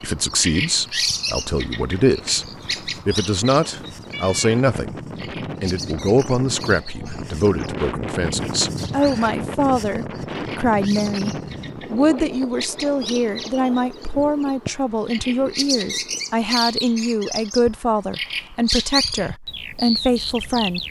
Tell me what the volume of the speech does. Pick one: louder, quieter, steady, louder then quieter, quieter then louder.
steady.